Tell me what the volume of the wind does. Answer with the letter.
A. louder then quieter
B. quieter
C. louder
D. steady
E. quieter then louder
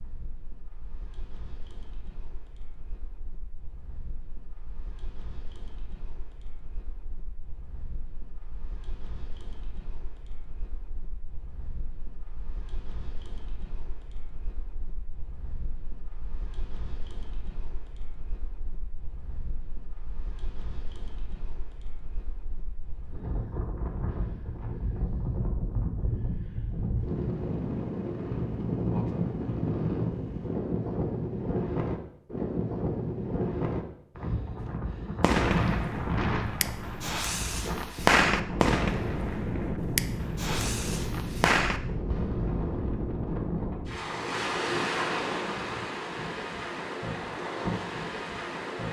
C.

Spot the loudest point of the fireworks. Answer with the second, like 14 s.
38 s.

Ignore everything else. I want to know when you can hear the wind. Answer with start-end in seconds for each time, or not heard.
0.0-48.8.